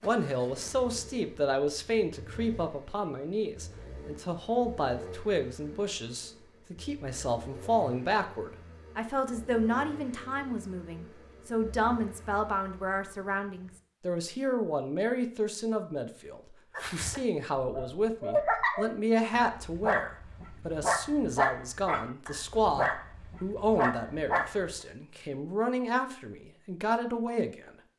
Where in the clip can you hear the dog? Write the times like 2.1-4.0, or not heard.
16.8-24.8.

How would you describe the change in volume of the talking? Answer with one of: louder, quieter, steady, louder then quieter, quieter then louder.
steady.